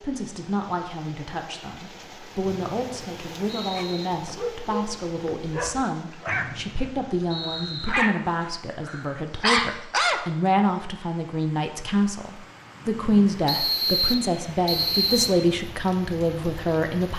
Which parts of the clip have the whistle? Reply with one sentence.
The whistle can be heard from 2.5 to 4.0 s, from 6.2 to 7.9 s and from 13.4 to 15.3 s.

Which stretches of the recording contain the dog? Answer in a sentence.
You can hear the dog from 3.8 to 10.2 s.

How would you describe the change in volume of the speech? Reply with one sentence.
The loudness of the speech goes up.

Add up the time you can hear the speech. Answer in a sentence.
The speech can be heard for 17 seconds in total.